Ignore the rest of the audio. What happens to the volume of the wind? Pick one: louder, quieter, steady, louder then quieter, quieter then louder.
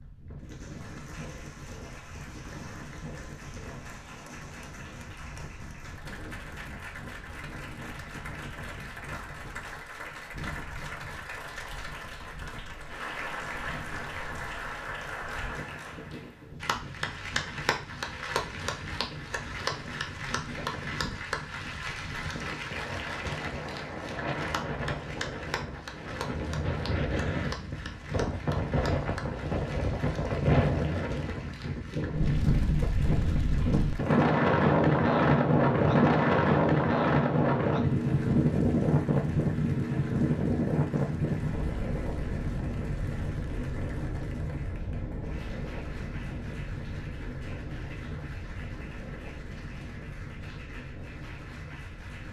louder then quieter.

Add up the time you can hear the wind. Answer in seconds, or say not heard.
52 s.